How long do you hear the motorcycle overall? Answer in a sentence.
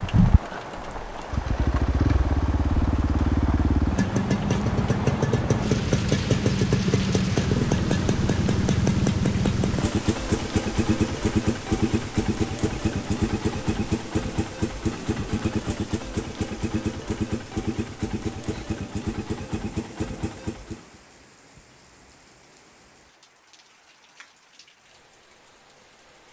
You can hear the motorcycle for 21 seconds altogether.